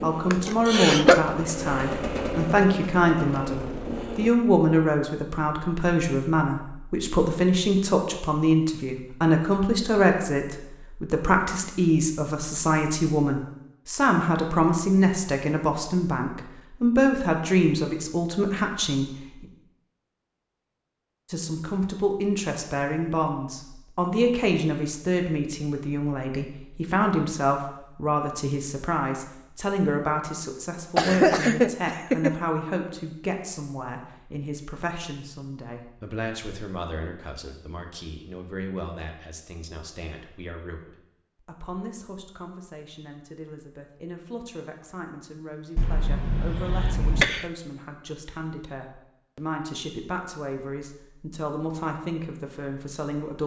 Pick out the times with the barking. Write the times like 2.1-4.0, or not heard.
not heard.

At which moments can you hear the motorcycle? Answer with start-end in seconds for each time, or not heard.
0.0-4.3.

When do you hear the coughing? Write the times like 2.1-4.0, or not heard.
0.3-1.2, 30.9-32.4, 45.8-47.5.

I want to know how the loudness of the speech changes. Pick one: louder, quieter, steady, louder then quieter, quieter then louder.
quieter.